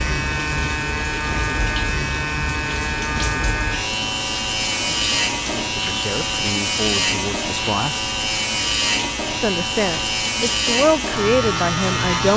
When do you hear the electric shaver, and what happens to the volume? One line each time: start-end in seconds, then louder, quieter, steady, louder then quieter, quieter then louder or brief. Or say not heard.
0.0-12.3 steady.